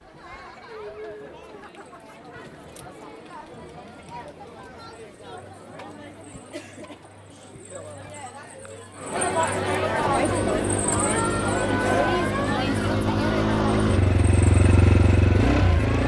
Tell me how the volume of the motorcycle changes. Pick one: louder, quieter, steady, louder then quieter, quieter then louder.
louder.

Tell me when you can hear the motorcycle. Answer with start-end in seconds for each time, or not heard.
10.0-16.0.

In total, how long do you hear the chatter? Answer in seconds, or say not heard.
16 s.